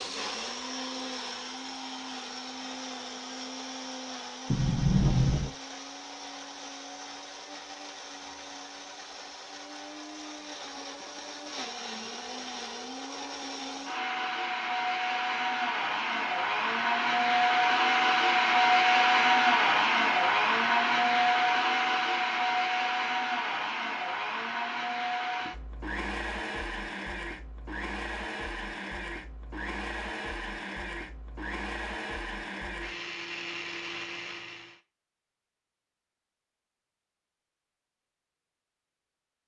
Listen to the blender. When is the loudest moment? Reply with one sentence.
The volume of the blender peaks at 19 seconds.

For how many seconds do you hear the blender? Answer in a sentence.
You can hear the blender for 35 seconds altogether.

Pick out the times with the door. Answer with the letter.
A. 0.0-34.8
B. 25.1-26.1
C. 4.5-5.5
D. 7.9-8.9
C.